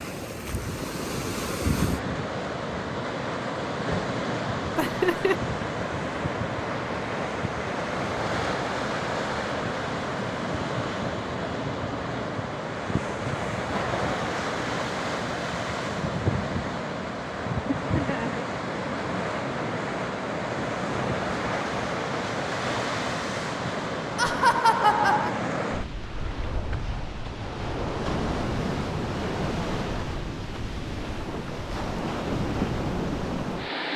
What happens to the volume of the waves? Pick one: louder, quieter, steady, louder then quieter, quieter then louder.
steady.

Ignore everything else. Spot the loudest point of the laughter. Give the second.
25 s.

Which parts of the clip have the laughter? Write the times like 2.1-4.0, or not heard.
4.8-5.3, 17.9-18.4, 24.1-25.4.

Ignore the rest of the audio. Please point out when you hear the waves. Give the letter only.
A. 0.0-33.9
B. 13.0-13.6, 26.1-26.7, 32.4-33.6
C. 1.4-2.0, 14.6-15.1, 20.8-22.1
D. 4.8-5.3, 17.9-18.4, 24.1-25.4
A.